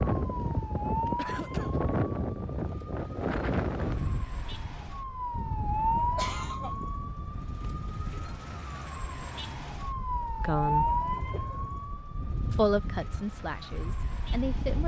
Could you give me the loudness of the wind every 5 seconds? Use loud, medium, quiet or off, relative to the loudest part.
loud, medium, medium.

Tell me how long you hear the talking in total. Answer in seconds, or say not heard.
3 s.